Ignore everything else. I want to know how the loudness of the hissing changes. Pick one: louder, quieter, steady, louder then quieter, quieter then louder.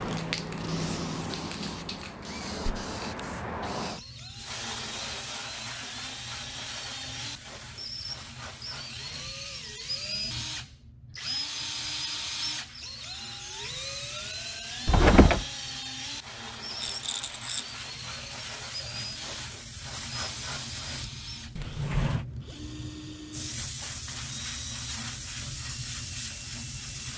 quieter then louder.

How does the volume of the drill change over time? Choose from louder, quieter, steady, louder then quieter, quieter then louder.
louder then quieter.